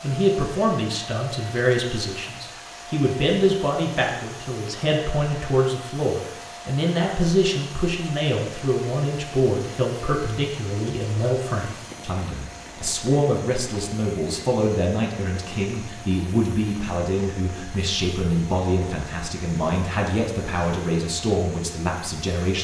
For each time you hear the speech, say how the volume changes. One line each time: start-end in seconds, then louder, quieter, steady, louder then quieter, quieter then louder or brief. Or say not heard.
0.0-22.6 steady.